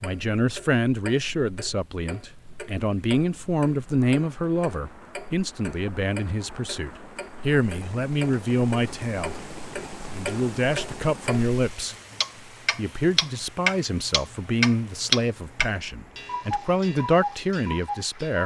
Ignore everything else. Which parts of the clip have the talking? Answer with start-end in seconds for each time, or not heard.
0.0-9.3, 10.1-11.9, 12.8-18.4.